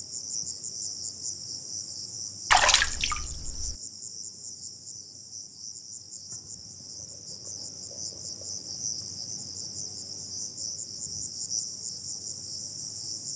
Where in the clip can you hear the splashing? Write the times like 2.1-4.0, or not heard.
2.5-3.8.